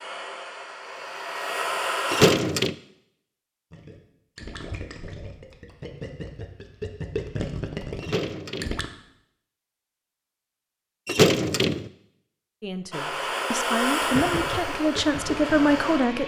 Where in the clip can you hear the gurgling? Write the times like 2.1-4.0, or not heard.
3.7-8.9, 14.0-16.2.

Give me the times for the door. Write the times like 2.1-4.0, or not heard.
2.1-2.8, 8.0-8.8, 11.1-11.9.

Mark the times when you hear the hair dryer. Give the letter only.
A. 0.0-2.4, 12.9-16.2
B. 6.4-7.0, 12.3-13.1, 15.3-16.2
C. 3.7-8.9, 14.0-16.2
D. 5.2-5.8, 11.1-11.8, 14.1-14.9
A.